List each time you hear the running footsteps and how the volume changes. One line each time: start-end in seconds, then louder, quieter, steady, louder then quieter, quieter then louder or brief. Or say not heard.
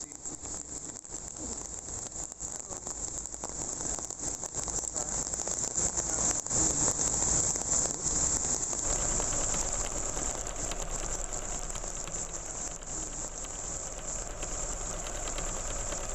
not heard.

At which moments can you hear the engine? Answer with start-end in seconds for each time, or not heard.
8.8-16.1.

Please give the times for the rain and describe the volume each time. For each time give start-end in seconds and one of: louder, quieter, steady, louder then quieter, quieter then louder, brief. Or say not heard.
0.0-16.1 louder then quieter.